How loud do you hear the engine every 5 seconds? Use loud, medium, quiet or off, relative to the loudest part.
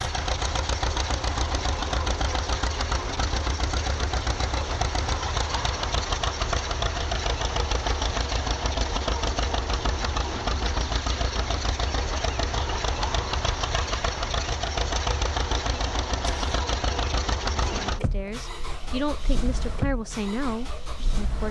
loud, loud, loud, loud, medium.